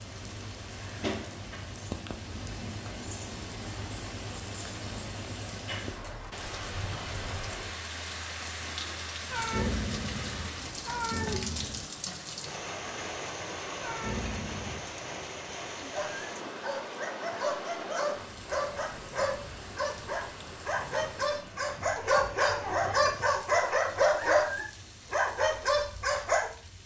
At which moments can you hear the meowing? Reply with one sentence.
The meowing can be heard from 9.3 to 11.9 s and from 13.8 to 14.9 s.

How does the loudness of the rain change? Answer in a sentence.
The volume of the rain goes down.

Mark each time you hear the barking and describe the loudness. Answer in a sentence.
The barking can be heard from 15.9 to 26.4 s, getting louder.